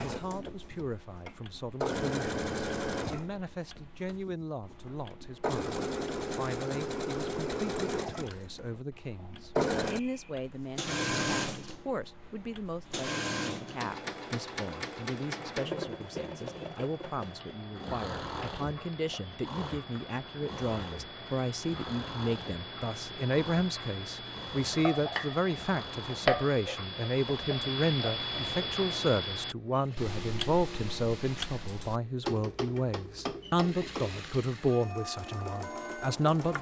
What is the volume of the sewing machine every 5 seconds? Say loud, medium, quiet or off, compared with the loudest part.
loud, loud, loud, medium, medium, quiet, quiet, medium.